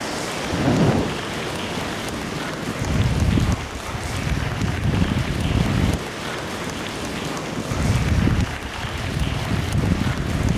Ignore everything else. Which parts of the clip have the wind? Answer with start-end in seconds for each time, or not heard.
0.0-10.5.